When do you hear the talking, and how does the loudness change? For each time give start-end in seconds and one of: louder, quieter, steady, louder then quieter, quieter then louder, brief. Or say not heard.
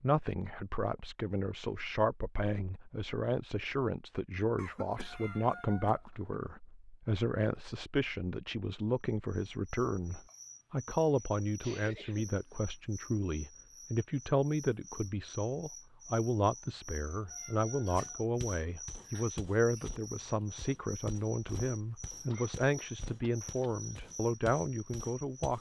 0.0-25.5 steady.